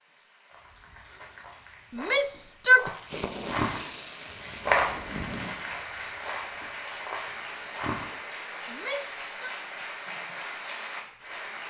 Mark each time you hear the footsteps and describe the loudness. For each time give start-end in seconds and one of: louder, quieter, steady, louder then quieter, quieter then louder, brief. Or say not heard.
0.5-8.2 louder then quieter.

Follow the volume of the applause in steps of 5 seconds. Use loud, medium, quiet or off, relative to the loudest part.
quiet, loud, loud.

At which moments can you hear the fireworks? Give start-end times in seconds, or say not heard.
3.0-5.5.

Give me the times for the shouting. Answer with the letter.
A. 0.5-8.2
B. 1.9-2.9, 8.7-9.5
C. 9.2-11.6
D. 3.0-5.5
B.